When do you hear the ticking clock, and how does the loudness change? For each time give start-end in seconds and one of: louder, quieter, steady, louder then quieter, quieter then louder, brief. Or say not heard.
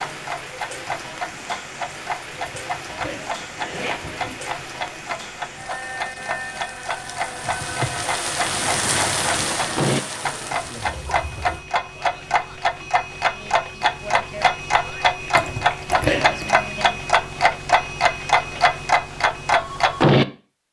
0.0-20.2 louder.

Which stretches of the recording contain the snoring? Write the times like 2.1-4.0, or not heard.
not heard.